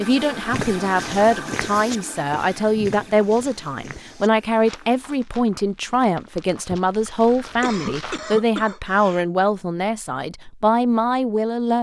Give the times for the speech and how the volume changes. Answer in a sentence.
You can hear the speech from 0.0 to 11.7 s, at a steady volume.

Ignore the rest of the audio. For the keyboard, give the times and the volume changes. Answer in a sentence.
You can't hear the keyboard here.